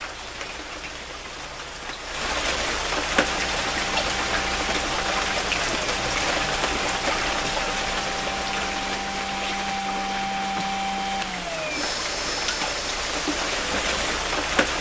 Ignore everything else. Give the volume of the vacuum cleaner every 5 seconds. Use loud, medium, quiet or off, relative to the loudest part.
medium, loud, loud.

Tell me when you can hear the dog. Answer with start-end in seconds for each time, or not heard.
not heard.